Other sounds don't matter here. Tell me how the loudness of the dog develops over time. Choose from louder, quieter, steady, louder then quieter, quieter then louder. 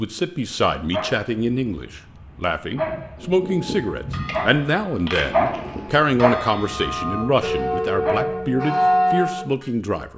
louder then quieter.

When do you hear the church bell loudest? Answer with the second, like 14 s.
9 s.